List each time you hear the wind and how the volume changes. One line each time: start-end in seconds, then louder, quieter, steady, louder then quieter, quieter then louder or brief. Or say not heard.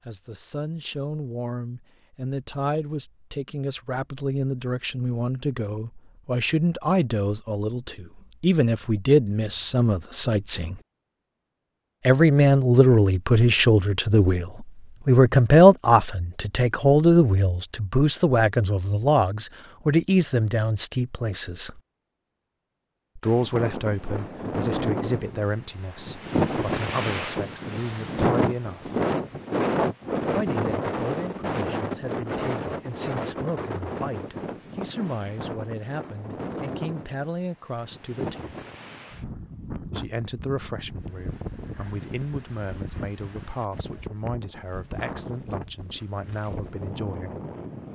23.2-47.9 quieter.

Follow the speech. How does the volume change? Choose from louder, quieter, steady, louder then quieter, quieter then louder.
louder then quieter.